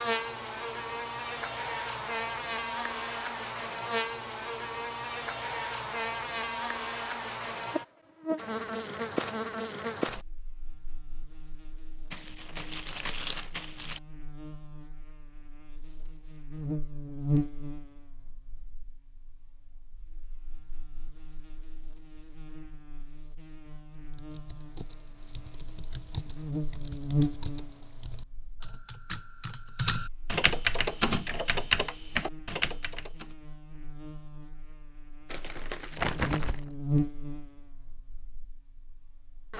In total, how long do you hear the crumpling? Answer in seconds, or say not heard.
3 s.